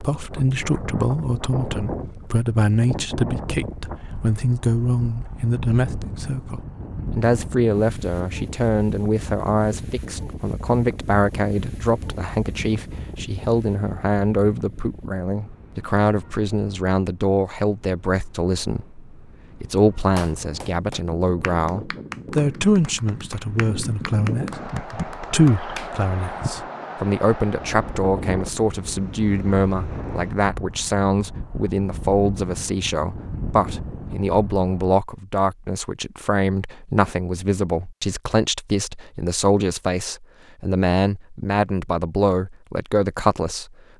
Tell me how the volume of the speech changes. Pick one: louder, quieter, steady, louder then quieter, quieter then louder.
steady.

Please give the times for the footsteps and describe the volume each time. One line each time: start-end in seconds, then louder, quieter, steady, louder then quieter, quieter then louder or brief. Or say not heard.
not heard.